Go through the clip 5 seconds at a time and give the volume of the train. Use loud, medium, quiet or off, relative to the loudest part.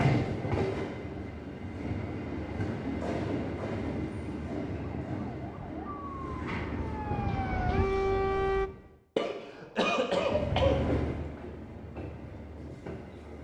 loud, medium, loud.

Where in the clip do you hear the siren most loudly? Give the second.
8 s.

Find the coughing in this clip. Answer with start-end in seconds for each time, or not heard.
9.2-10.8.